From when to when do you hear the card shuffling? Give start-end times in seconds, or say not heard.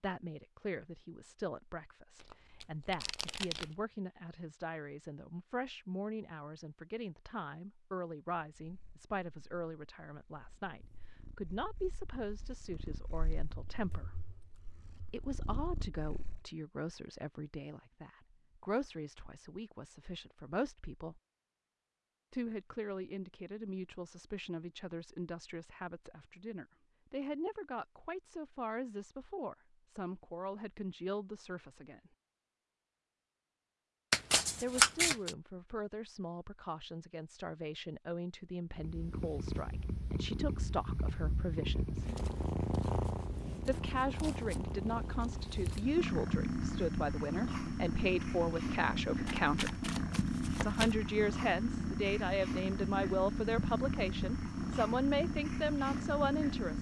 2.2-3.7, 34.1-35.3, 49.2-51.0.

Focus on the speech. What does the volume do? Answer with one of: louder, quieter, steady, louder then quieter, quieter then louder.
louder.